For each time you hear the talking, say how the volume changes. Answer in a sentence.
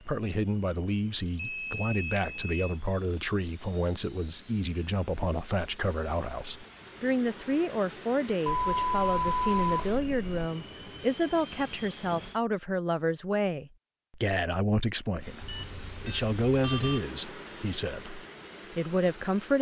You can hear the talking from 0.1 to 19.5 s, at a steady volume.